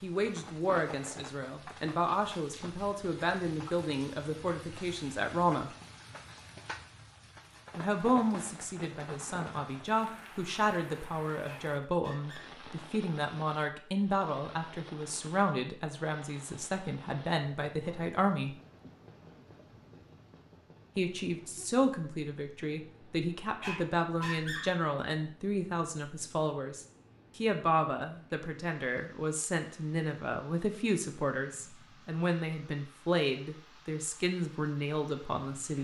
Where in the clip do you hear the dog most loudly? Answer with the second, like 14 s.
24 s.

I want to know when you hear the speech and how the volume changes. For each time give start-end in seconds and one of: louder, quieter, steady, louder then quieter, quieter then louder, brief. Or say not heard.
0.0-5.7 steady
7.8-18.6 steady
20.9-35.7 steady.